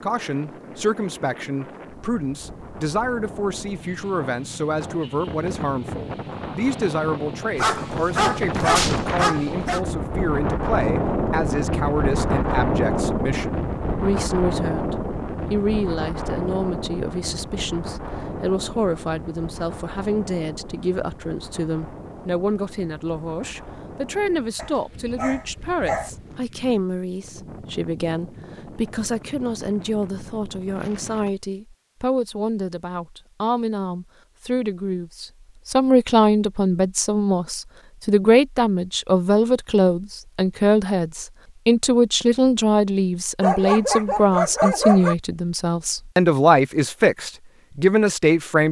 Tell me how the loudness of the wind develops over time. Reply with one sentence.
The volume of the wind goes up, then down.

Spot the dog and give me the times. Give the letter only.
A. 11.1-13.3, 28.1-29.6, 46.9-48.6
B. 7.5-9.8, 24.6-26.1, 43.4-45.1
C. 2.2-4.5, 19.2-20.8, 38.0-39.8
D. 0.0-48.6
B.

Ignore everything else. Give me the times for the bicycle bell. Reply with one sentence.
You can't hear the bicycle bell here.